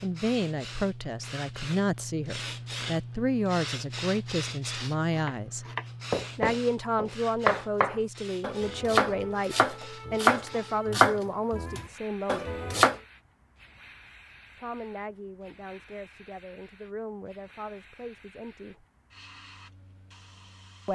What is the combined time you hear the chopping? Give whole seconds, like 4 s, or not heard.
8 s.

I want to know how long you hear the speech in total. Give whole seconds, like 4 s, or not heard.
16 s.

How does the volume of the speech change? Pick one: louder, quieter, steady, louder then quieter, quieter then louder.
quieter.